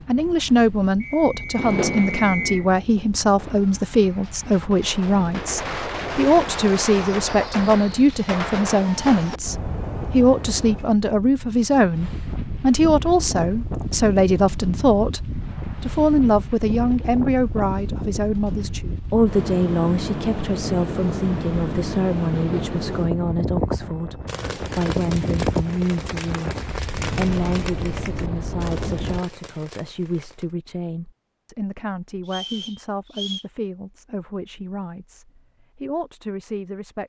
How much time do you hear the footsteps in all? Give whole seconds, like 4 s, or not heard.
not heard.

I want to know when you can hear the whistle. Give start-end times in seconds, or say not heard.
1.0-2.6, 32.2-33.5.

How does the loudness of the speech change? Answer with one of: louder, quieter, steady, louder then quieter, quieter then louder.
quieter.